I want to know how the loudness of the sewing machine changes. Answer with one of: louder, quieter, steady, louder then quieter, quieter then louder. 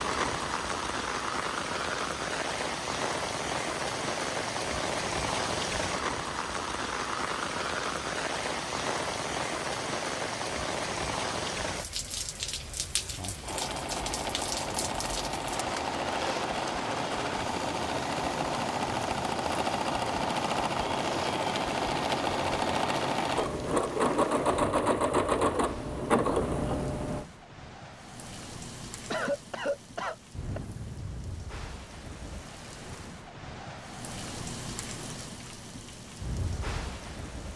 louder.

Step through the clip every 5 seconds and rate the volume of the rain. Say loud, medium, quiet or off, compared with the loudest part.
loud, loud, loud, medium, medium, quiet, medium, medium.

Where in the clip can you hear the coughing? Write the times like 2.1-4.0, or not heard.
29.1-30.6.